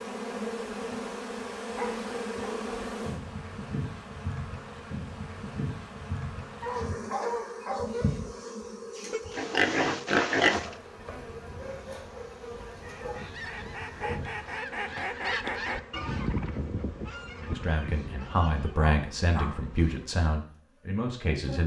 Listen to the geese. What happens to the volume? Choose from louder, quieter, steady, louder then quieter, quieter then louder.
louder then quieter.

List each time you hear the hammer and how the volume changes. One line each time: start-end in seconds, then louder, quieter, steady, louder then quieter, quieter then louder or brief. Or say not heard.
not heard.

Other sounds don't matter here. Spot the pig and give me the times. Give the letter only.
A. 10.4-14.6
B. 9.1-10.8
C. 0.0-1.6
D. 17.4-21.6
B.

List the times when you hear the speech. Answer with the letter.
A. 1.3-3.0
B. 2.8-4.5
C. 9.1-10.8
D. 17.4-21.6
D.